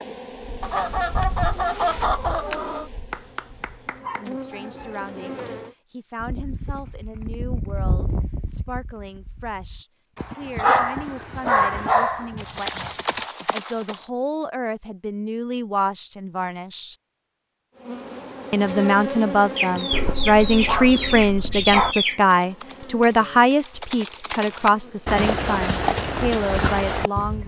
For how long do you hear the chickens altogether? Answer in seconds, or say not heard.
5 s.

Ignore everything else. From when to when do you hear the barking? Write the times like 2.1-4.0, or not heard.
3.1-5.1, 10.6-12.9, 19.9-21.9.